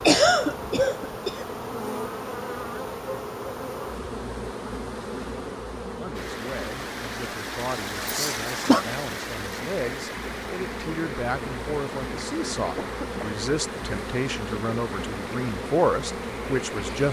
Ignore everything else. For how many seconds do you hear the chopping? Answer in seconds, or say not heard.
not heard.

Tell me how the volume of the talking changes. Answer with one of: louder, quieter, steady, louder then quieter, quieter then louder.
louder.